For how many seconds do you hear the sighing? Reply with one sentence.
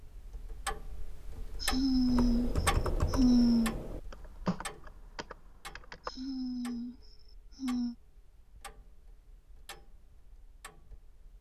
The sighing can be heard for 4 seconds in total.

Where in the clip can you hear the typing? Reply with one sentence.
The typing can be heard from 2.0 to 6.1 s.